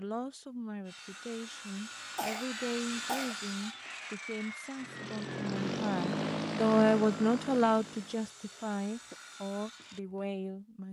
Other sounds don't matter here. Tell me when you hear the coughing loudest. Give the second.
3 s.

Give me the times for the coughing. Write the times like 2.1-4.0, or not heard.
2.1-3.4, 8.2-9.2.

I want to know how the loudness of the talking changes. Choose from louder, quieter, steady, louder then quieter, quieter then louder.
louder then quieter.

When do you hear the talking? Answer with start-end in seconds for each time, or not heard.
0.0-10.8.